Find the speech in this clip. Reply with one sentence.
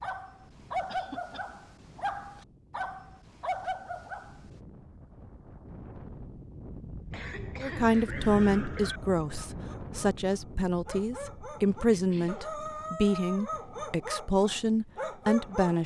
You can hear the speech from 7.6 to 15.8 s.